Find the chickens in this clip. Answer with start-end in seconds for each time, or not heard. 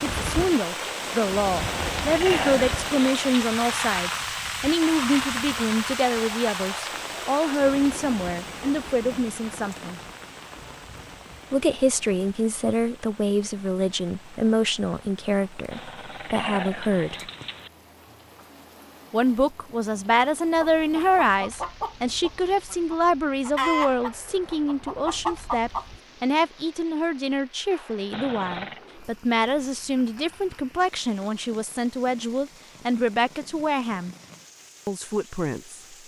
20.6-26.0.